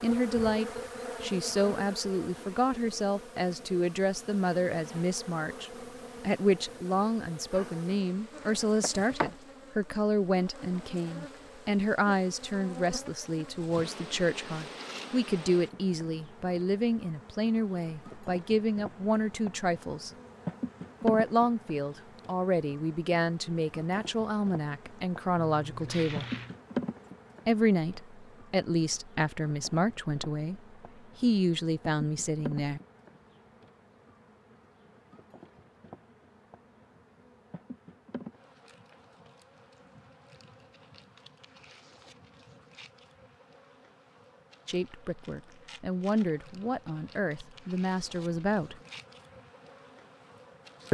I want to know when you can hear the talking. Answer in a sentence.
You can hear the talking from 0.0 to 20.1 s, from 21.0 to 26.2 s, from 27.4 to 30.6 s, from 31.2 to 32.8 s and from 44.6 to 48.8 s.